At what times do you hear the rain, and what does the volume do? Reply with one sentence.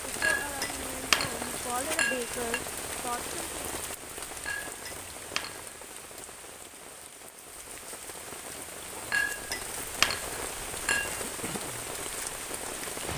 You can hear the rain from 0.0 to 13.1 s, getting quieter then louder.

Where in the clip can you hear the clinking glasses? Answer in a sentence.
You can hear the clinking glasses from 0.2 to 2.6 s, from 4.5 to 5.7 s and from 9.1 to 11.2 s.